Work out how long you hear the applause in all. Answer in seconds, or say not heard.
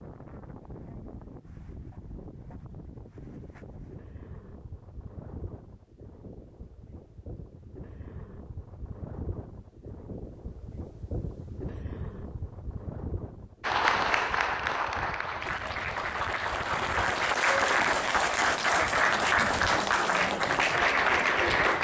8 s.